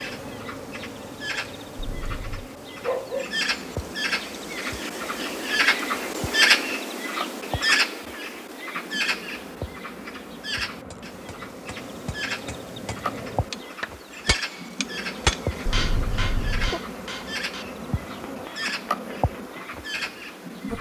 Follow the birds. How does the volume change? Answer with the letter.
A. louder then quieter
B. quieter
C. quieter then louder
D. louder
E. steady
A.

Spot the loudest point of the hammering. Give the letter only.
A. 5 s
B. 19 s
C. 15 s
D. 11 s
C.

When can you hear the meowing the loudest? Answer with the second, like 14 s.
16 s.